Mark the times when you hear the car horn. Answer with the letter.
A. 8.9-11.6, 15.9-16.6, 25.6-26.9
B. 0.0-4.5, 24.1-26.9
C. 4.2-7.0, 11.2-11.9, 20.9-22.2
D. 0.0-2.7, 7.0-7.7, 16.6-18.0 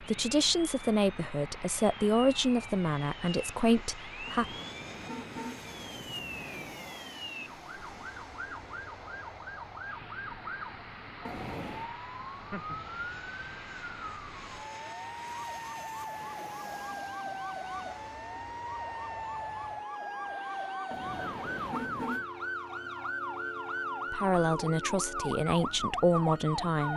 C.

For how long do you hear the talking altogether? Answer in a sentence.
The talking can be heard for 7 seconds in total.